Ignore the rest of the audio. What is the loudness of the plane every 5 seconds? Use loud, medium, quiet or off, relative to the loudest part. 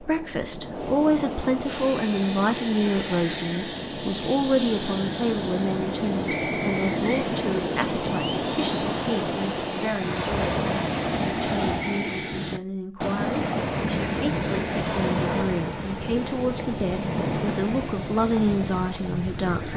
loud, medium, medium, off.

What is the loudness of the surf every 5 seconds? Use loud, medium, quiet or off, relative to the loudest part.
medium, loud, loud, loud.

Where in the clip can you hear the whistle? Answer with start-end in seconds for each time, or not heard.
6.2-7.3, 11.8-12.3.